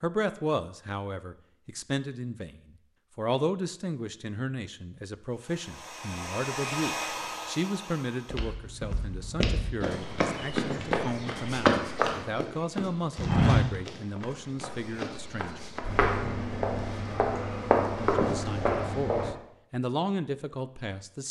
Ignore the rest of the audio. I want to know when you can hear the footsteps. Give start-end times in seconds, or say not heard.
8.3-19.4.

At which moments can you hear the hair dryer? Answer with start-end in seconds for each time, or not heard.
5.3-8.5.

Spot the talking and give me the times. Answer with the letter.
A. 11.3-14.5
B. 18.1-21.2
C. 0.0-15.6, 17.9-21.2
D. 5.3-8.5
C.